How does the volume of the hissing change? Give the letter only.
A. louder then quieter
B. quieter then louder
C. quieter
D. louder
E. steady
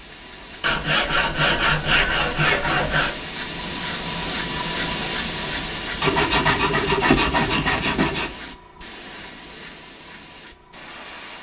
A.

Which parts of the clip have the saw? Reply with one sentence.
The saw can be heard from 0.6 to 3.2 s and from 6.0 to 8.3 s.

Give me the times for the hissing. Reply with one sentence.
The hissing can be heard from 0.0 to 11.3 s.